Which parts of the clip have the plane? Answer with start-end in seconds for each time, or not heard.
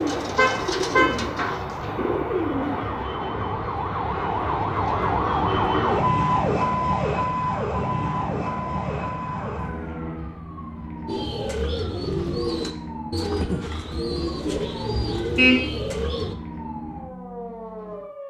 0.0-10.3.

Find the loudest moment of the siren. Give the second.
6 s.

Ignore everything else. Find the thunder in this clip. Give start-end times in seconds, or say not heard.
not heard.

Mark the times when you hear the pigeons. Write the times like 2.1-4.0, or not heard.
0.0-3.0, 11.1-16.4.